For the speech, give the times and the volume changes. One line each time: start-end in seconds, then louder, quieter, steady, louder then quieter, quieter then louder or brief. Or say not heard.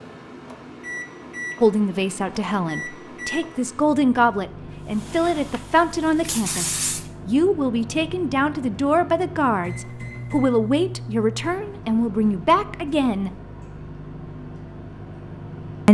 1.6-13.3 steady.